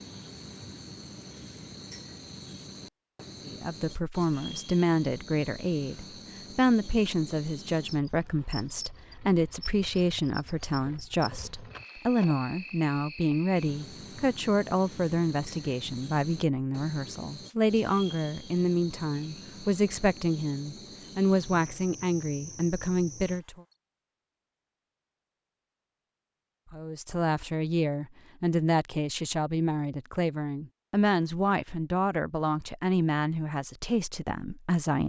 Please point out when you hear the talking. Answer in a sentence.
You can hear the talking from 3.4 to 23.6 s and from 26.7 to 35.0 s.